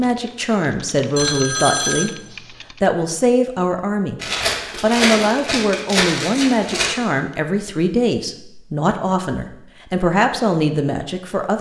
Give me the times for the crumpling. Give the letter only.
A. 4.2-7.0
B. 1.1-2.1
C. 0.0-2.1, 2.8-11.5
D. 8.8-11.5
A.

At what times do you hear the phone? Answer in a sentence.
The phone can be heard from 1.1 to 2.1 s.